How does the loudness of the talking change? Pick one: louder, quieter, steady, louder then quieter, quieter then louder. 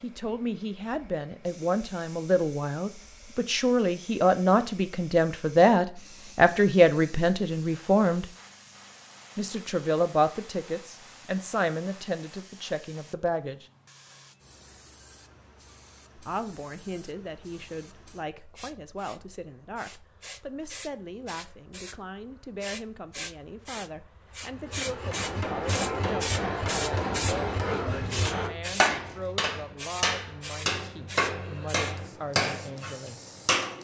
quieter.